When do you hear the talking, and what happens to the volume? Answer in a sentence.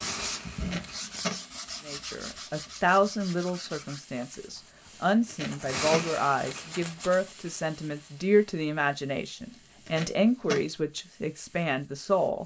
You can hear the talking from 1.9 to 12.4 s, at a steady volume.